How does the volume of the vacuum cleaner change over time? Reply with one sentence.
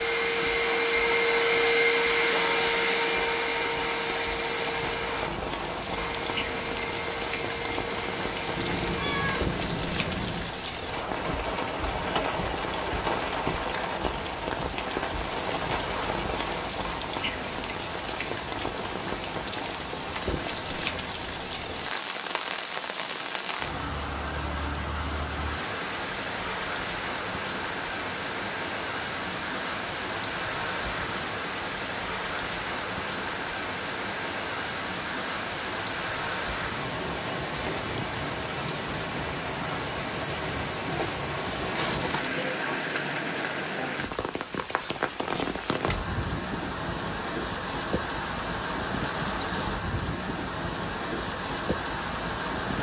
The loudness of the vacuum cleaner goes down.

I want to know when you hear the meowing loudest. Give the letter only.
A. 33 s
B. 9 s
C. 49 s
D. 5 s
B.